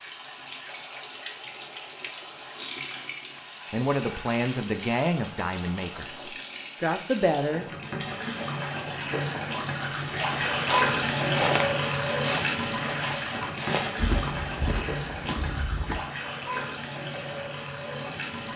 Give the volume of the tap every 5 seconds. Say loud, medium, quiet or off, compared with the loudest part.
medium, medium, loud, medium.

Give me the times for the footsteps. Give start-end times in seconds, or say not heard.
9.8-16.0.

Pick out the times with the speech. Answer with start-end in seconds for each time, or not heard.
3.7-7.7.